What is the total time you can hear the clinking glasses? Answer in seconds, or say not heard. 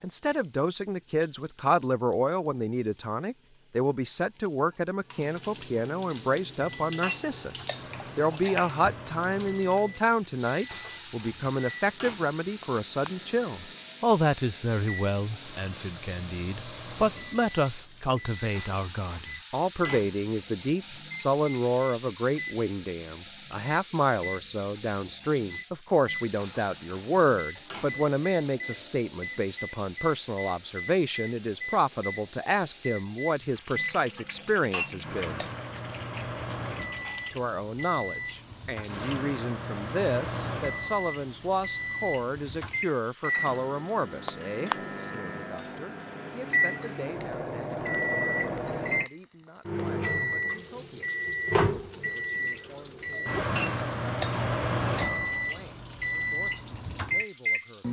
4 s.